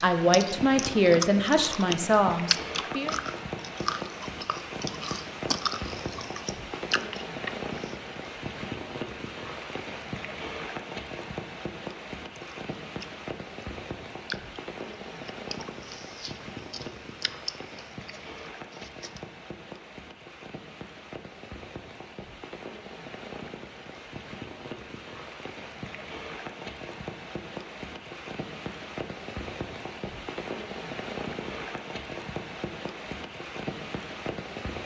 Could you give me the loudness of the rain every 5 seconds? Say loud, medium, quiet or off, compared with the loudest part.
loud, loud, loud, medium, medium, loud, loud.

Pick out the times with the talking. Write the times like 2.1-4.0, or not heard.
0.0-3.1.